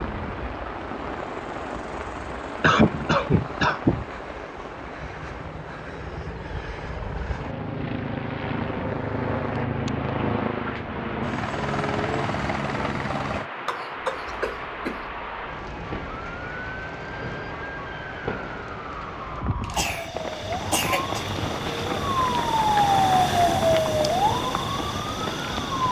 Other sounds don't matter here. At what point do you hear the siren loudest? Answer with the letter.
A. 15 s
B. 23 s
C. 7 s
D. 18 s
B.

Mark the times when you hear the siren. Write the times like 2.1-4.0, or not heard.
14.1-25.8.